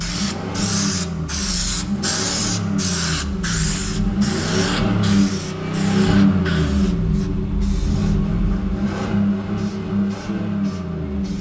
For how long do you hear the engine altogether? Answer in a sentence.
The engine can be heard for 11 seconds in total.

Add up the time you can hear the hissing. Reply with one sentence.
The hissing can be heard for 11 seconds in total.